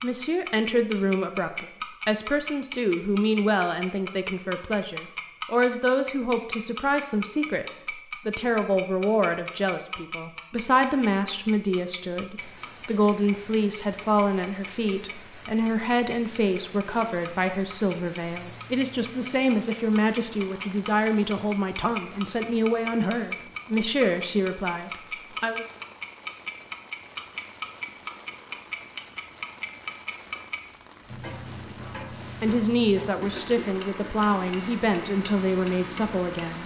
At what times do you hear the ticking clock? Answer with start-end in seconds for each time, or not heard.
0.0-36.6.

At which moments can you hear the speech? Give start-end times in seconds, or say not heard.
0.0-25.6, 31.9-36.6.